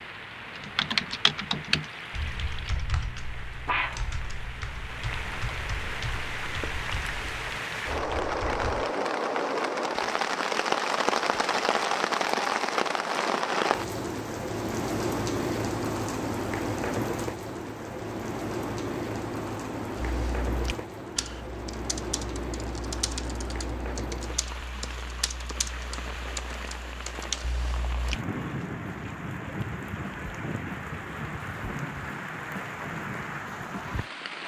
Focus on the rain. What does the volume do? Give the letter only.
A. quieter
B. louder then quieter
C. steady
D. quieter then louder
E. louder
B.